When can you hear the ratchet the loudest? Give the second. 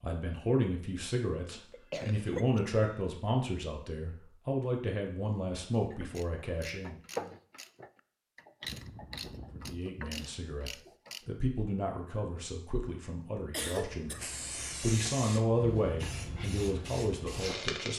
7 s.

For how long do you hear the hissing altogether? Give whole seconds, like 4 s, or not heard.
4 s.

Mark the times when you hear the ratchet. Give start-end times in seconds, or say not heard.
5.7-11.2.